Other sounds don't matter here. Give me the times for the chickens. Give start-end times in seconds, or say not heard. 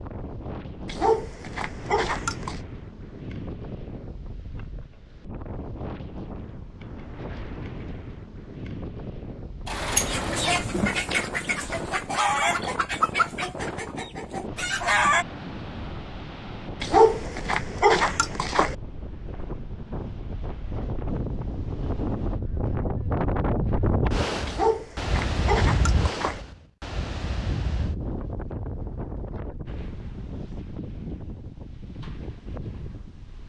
10.0-15.2.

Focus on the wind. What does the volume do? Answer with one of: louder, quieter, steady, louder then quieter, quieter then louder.
louder then quieter.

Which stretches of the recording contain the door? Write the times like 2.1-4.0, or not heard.
9.7-10.8.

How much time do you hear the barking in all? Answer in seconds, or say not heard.
6 s.